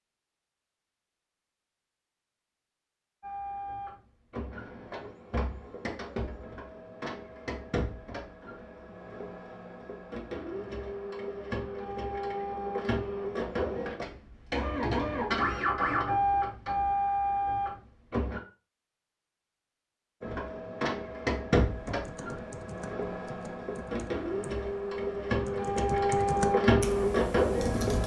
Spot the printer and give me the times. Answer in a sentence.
You can hear the printer from 3.2 to 18.4 s and from 20.2 to 28.0 s.